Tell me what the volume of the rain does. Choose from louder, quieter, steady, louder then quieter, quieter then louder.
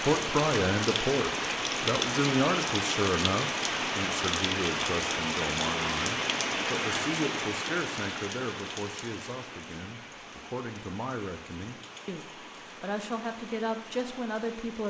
quieter.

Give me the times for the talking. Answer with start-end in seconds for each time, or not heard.
0.0-14.8.